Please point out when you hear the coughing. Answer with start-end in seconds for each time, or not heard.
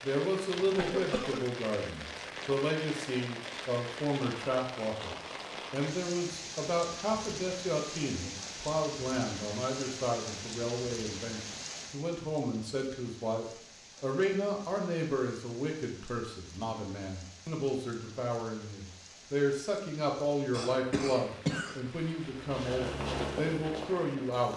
0.6-1.4, 20.5-21.9.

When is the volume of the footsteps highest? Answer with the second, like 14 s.
23 s.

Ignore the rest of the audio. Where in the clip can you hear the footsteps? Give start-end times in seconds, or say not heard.
22.1-24.5.